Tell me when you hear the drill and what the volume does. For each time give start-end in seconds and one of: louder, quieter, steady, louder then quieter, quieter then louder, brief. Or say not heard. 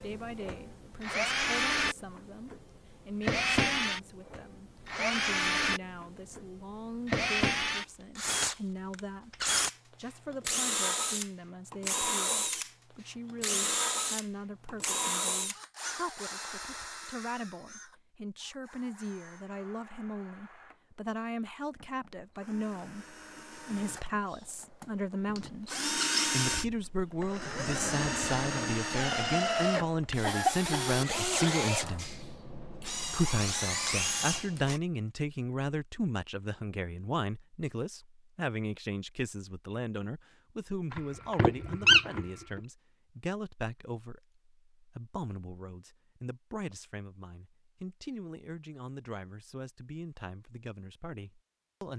0.0-34.8 quieter then louder.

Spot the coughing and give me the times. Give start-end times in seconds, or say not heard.
30.2-30.9.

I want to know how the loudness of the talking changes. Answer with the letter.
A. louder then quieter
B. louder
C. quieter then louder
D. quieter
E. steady
A.